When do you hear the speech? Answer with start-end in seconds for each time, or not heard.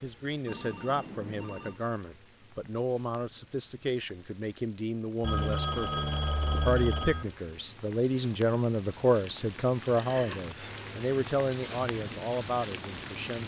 0.0-13.4.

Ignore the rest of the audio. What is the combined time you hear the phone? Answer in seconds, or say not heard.
4 s.